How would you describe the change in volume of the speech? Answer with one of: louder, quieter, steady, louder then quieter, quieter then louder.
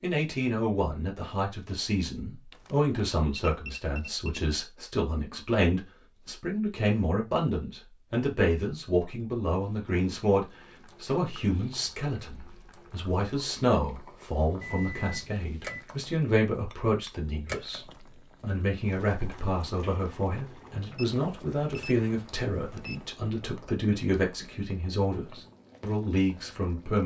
steady.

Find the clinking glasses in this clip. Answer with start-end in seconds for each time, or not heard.
16.7-17.1.